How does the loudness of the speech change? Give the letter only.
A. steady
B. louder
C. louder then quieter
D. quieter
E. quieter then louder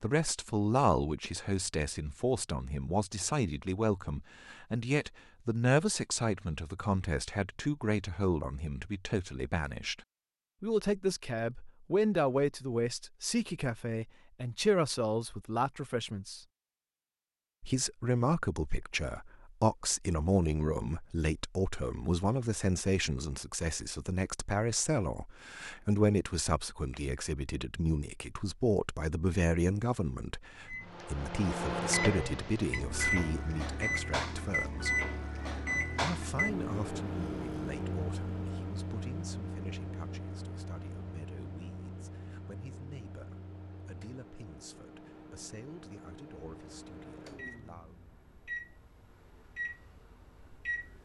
D.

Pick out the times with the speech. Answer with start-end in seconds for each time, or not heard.
0.0-10.0, 10.6-16.4, 17.6-35.0, 35.9-48.0.